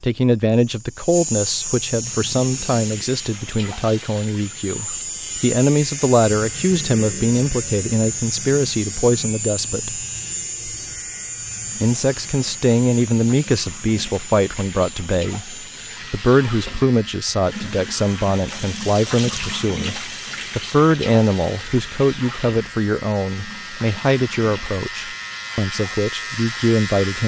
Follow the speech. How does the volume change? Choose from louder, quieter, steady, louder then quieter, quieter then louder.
steady.